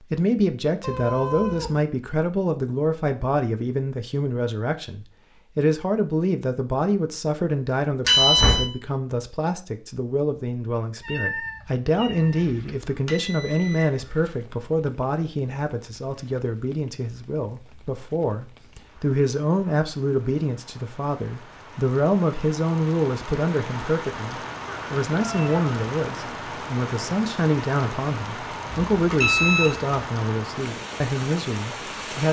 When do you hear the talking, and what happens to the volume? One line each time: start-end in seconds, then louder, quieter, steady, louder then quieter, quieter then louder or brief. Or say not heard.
0.0-32.2 steady.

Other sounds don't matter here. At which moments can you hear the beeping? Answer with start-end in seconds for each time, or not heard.
8.1-8.7, 12.3-14.3, 28.9-29.9.